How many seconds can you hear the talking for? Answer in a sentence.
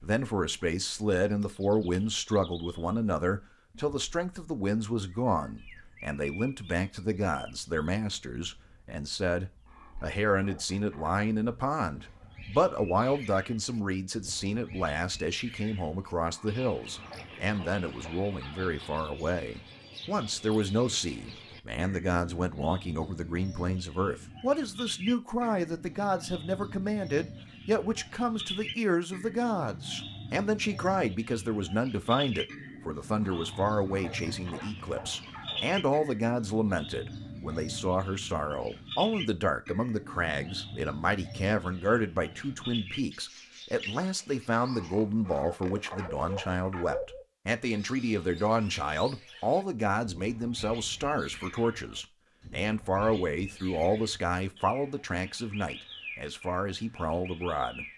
The talking can be heard for 58 seconds in total.